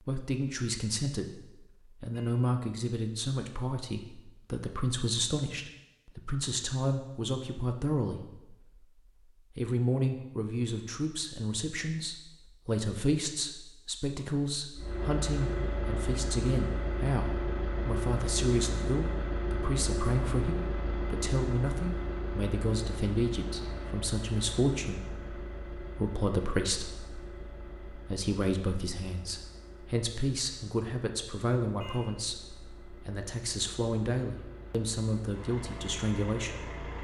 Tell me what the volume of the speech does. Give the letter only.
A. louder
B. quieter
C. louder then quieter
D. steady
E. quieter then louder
D.